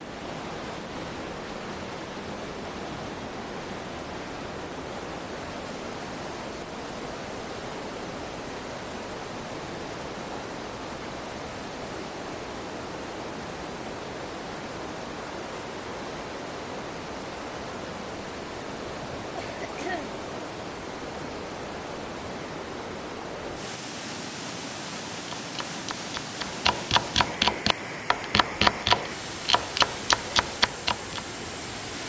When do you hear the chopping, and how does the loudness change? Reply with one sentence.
You can hear the chopping from 25.2 to 31.2 s, getting louder.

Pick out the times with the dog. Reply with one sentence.
The dog can't be heard in this clip.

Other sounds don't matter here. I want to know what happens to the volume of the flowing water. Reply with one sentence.
The loudness of the flowing water stays about the same.